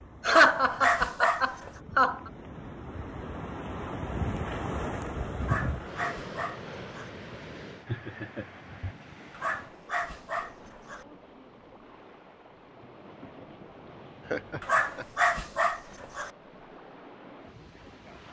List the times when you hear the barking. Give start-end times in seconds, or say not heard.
0.2-1.7, 5.4-7.1, 9.3-11.1, 14.6-16.3.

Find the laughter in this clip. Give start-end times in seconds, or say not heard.
0.2-2.3, 7.8-8.9, 14.2-15.1.